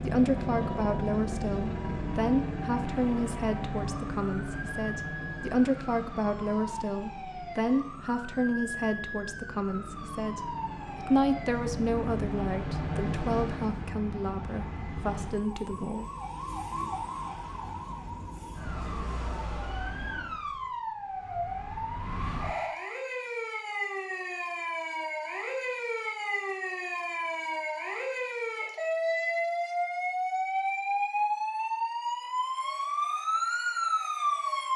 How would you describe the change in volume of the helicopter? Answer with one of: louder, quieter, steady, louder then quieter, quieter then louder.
quieter then louder.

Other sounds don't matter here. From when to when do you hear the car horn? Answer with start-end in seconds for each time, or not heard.
not heard.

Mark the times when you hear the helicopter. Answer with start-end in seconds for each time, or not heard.
0.0-13.9.